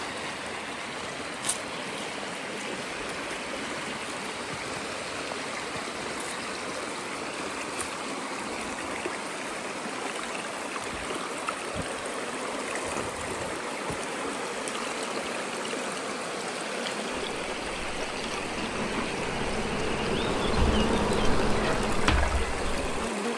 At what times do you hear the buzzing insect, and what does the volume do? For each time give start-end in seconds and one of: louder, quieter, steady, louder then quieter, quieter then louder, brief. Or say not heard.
11.7-23.3 louder.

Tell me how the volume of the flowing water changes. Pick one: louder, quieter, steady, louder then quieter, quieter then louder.
steady.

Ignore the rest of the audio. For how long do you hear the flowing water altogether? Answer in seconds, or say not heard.
23 s.